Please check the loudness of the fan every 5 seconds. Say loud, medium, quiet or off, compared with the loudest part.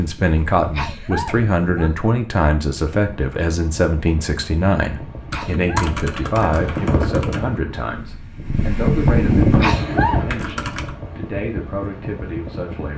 quiet, loud, medium.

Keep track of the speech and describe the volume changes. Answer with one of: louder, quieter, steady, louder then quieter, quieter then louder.
quieter.